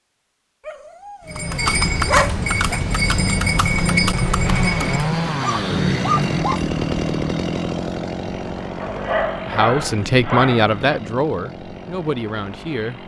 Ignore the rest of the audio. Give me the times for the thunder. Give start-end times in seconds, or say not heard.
4.4-6.5.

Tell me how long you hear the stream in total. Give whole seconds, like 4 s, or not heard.
not heard.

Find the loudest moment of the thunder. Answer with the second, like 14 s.
6 s.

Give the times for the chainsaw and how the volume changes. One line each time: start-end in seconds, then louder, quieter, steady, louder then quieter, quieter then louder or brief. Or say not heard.
4.5-13.0 quieter.